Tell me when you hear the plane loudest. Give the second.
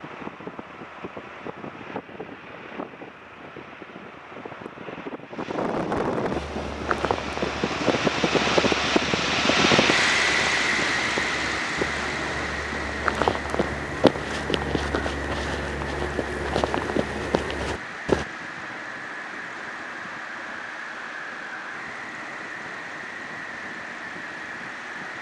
10 s.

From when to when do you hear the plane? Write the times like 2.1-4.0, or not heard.
0.0-25.1.